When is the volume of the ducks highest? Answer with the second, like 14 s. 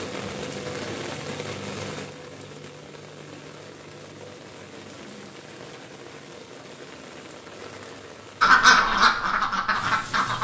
9 s.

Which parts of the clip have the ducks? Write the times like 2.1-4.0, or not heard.
8.4-10.3.